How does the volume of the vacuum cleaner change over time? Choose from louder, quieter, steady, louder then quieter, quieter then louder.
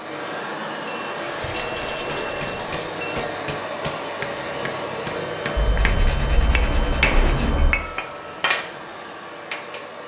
quieter.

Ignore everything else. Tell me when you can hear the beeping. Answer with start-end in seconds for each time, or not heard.
0.8-3.2, 5.2-7.8.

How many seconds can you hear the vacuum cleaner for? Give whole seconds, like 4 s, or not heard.
10 s.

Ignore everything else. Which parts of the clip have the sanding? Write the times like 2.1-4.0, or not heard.
1.4-2.9, 5.5-7.8.